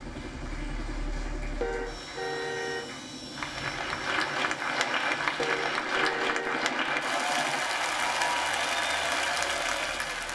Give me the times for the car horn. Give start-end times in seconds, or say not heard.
1.6-2.9, 5.3-6.7.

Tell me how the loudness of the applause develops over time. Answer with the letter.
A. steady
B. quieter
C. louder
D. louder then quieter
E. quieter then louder
C.